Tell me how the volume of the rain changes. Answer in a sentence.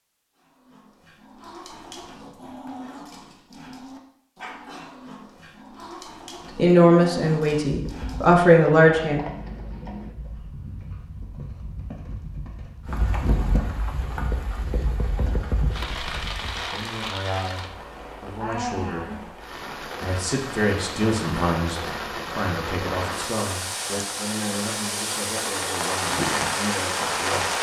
The loudness of the rain goes up.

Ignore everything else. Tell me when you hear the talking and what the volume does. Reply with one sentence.
The talking can be heard briefly from 6.5 to 9.2 s; and from 16.6 to 27.5 s, getting louder then quieter.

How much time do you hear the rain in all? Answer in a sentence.
You can hear the rain for 15 seconds altogether.